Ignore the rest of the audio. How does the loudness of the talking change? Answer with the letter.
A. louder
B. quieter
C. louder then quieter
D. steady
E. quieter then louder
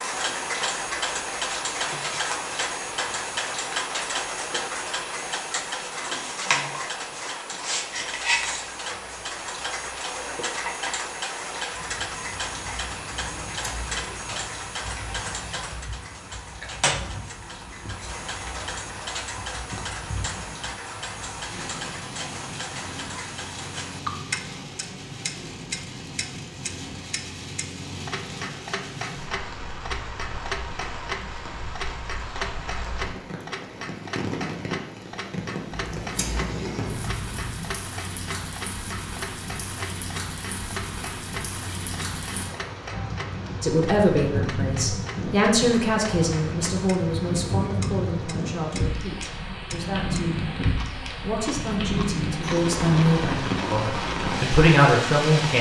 E.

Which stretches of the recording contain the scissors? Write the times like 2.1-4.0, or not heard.
13.2-14.6, 35.7-37.7.